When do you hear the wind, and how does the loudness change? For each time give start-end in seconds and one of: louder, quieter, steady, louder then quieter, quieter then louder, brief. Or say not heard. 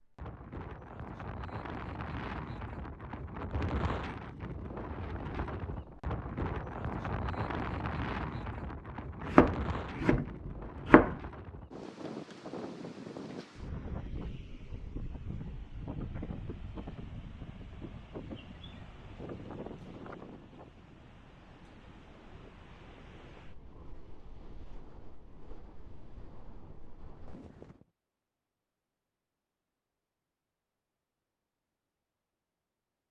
0.0-27.9 quieter.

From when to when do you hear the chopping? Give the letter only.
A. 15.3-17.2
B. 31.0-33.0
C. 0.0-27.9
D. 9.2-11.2
D.